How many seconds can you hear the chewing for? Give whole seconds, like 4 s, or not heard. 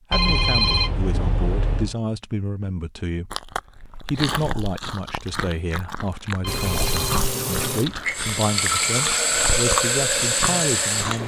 8 s.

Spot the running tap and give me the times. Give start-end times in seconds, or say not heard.
6.5-11.2.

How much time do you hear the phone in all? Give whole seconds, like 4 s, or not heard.
3 s.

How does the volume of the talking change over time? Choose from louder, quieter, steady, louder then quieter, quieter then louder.
steady.